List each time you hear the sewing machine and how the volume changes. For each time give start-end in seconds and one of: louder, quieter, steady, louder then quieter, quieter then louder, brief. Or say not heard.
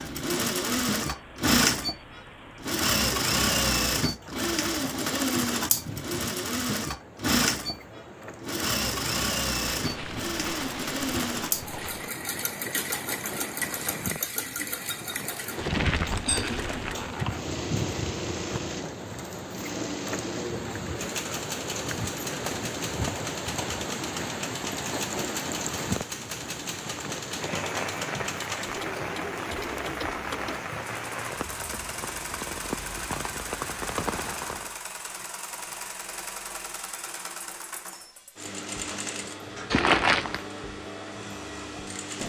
0.0-42.2 quieter.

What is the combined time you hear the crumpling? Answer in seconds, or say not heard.
5 s.